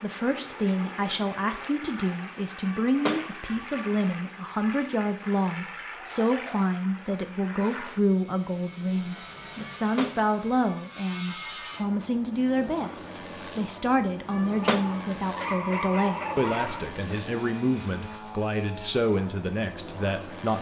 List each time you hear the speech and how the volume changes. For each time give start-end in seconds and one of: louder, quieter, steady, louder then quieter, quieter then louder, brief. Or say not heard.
0.0-20.5 steady.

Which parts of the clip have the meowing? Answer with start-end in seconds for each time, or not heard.
2.6-4.0, 9.6-10.8, 14.2-15.2.